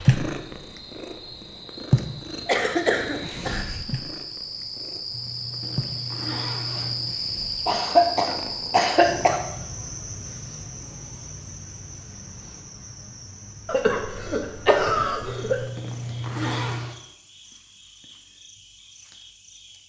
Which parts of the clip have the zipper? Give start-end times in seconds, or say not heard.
5.1-7.2, 15.2-16.9.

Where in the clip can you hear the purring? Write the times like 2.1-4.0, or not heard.
0.0-9.2.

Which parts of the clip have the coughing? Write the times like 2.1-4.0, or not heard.
2.5-3.6, 7.7-9.4, 13.7-15.7.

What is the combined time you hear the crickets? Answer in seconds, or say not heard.
20 s.